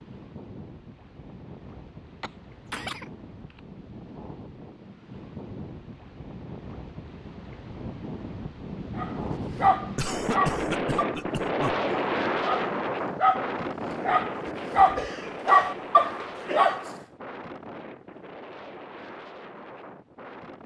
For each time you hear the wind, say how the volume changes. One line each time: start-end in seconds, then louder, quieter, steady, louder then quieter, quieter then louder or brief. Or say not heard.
0.0-20.6 louder then quieter.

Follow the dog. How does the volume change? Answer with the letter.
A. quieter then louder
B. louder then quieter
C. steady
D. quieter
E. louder
A.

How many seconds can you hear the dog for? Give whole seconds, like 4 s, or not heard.
8 s.